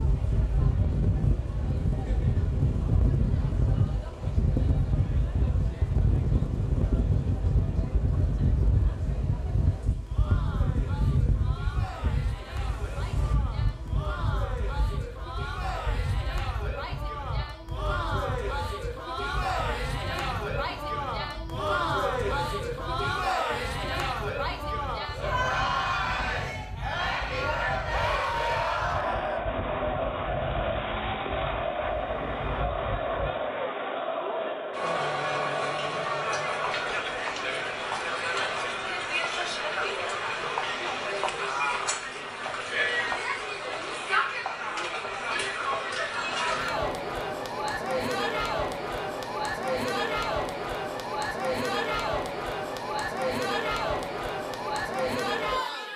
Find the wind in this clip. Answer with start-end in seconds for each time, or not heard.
0.0-33.4.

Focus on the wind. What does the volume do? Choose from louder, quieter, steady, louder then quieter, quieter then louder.
quieter.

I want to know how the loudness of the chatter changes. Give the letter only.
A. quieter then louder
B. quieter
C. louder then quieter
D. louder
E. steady
D.